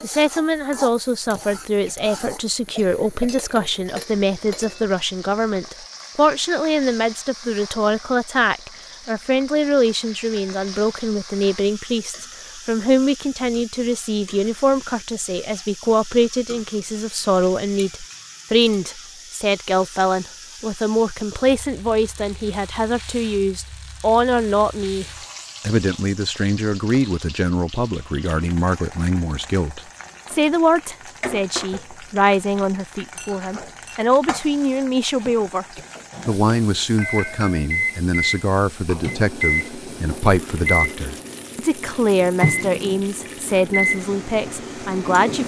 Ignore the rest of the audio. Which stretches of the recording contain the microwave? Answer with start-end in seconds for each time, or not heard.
36.1-45.4.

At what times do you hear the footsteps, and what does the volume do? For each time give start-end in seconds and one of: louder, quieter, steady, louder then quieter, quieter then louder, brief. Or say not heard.
not heard.